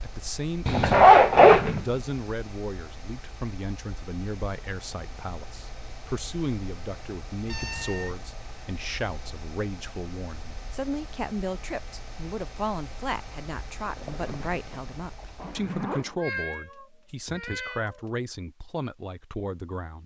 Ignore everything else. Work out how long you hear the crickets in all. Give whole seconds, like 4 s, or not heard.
not heard.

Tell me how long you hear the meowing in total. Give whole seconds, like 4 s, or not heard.
3 s.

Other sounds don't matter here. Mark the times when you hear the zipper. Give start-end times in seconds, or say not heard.
0.7-1.9, 13.8-16.1.